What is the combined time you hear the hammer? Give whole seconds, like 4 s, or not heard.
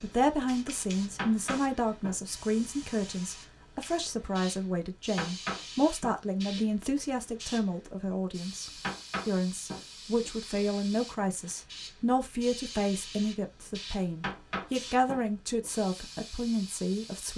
6 s.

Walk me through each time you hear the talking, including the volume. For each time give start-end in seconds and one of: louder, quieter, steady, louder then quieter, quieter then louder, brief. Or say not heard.
0.0-17.3 steady.